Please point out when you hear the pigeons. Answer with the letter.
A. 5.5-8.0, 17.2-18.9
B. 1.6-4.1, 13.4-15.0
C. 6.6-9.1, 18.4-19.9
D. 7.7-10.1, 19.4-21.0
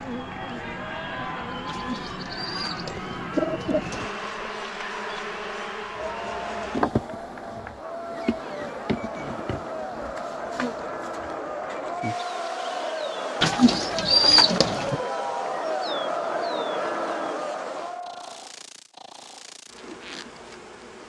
B.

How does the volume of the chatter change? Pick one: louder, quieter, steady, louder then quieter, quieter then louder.
louder.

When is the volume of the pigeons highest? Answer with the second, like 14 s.
14 s.